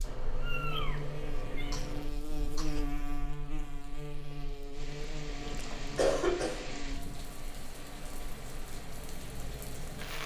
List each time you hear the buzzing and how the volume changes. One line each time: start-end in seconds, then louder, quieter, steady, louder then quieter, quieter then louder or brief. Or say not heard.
0.0-10.2 quieter.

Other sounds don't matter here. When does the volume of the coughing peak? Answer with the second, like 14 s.
6 s.